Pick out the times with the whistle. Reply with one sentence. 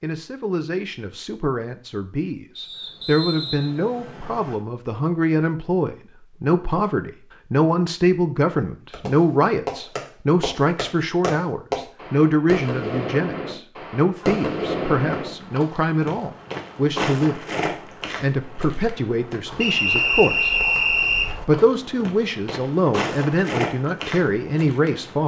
You can hear the whistle from 2.5 to 4.5 s and from 19.6 to 21.3 s.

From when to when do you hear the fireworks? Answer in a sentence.
The fireworks can be heard from 8.9 to 15.3 s.